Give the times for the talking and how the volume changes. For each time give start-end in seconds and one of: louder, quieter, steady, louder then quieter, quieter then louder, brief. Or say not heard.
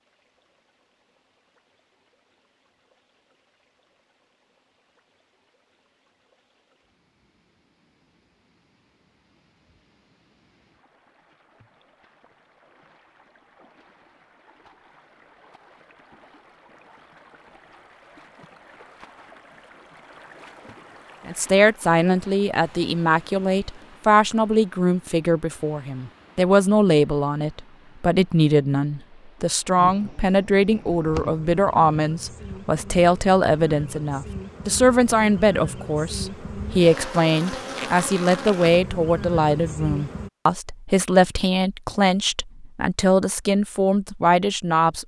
21.2-45.0 steady.